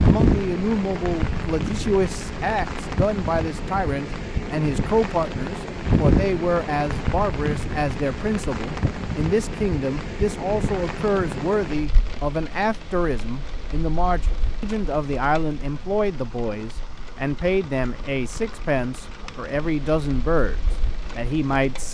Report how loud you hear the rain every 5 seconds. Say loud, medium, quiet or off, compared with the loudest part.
loud, loud, medium, quiet, quiet.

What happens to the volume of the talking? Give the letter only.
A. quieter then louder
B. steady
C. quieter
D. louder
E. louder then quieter
B.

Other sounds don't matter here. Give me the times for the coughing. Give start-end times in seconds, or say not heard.
not heard.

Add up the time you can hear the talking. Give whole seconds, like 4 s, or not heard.
22 s.